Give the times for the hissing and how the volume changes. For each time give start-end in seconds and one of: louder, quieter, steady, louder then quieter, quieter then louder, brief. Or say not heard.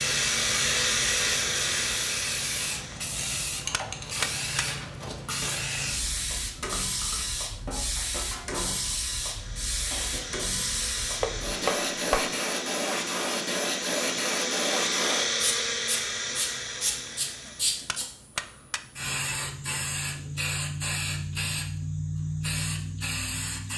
0.0-23.7 steady.